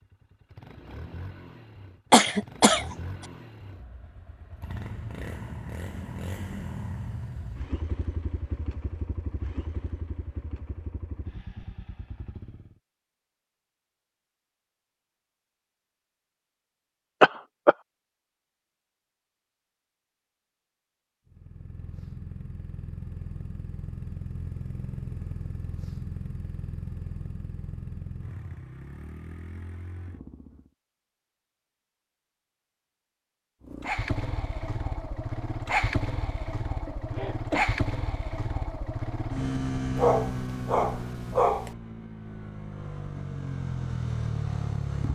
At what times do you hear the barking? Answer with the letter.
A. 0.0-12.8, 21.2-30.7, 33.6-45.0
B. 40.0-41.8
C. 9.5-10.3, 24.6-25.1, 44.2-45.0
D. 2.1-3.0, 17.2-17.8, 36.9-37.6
B.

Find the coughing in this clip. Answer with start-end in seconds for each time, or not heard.
2.1-3.0, 17.2-17.8, 36.9-37.6.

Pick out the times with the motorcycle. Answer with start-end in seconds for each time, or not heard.
0.0-12.8, 21.2-30.7, 33.6-45.0.